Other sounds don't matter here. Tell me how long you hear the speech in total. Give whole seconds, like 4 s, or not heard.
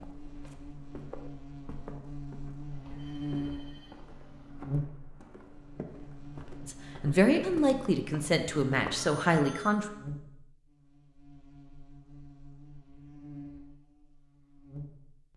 3 s.